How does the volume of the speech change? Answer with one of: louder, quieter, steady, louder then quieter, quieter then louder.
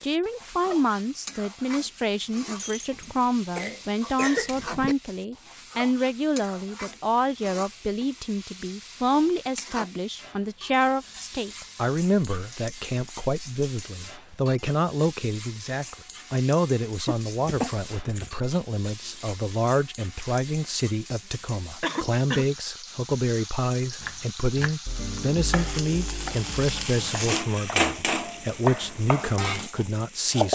steady.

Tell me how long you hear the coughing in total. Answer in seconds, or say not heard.
4 s.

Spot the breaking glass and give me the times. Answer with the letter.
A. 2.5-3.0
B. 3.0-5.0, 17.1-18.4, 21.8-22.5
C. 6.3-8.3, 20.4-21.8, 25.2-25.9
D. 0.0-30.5
A.